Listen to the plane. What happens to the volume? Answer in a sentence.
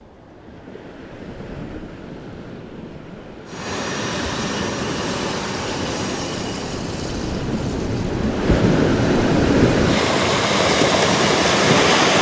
The volume of the plane goes down, then up.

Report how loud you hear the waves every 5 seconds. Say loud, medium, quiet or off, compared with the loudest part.
quiet, loud, loud.